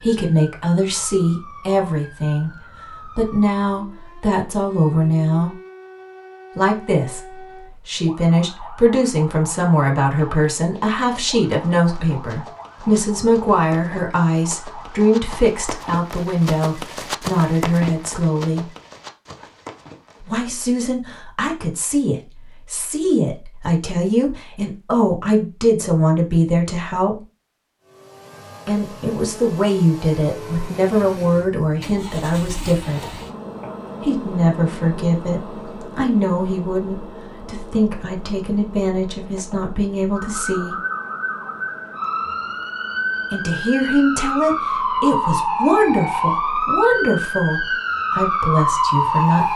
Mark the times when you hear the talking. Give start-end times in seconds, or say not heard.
0.0-5.5, 6.5-18.7, 20.2-27.1, 28.6-33.1, 34.0-40.8, 43.3-49.5.